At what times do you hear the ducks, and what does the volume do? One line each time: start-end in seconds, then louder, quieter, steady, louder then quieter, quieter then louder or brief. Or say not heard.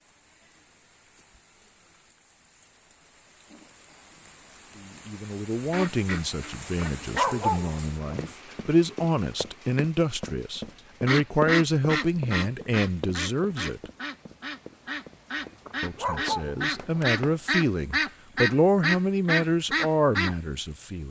5.7-7.2 brief
11.1-20.4 quieter then louder.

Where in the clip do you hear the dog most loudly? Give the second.
7 s.